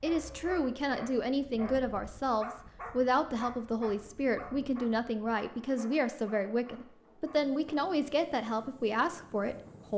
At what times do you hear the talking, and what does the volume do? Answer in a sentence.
The talking can be heard from 0.0 to 9.9 s, at a steady volume.